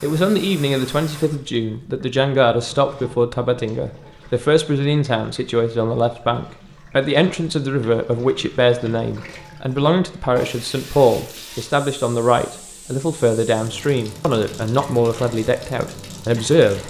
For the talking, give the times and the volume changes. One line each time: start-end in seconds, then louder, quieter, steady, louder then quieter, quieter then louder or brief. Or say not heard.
0.0-16.8 steady.